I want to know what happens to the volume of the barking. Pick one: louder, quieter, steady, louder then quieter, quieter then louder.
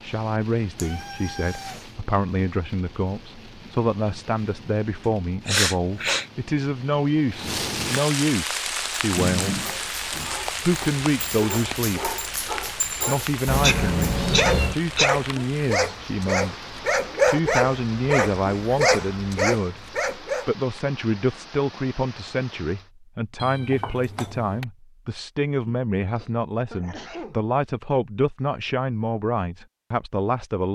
louder.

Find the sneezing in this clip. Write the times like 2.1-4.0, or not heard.
5.5-6.2, 13.6-15.2, 25.6-27.4.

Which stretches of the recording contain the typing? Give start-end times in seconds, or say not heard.
not heard.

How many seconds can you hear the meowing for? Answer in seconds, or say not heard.
4 s.